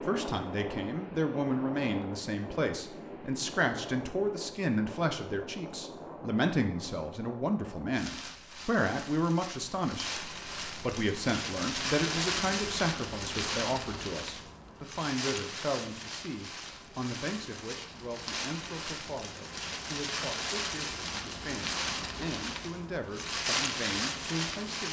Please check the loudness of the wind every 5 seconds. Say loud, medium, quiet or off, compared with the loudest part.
medium, medium, loud, medium, loud.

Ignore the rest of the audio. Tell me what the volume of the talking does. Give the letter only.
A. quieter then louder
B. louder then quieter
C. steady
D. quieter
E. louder
D.